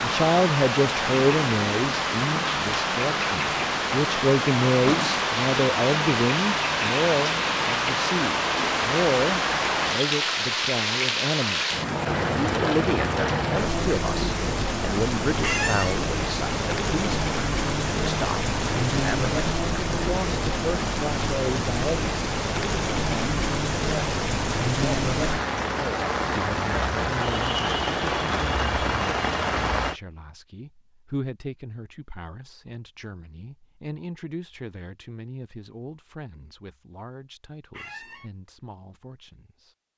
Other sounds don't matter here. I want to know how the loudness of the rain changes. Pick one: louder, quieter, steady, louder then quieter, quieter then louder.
steady.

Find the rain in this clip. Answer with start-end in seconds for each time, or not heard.
0.0-30.0.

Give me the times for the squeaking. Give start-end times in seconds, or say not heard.
15.4-15.9, 37.7-38.3.